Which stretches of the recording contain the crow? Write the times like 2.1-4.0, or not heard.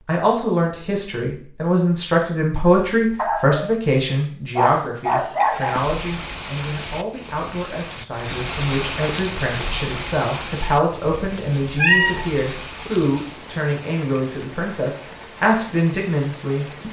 not heard.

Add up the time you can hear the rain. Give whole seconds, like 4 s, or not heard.
11 s.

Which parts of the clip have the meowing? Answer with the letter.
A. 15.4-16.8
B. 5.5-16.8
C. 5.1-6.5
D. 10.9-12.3
D.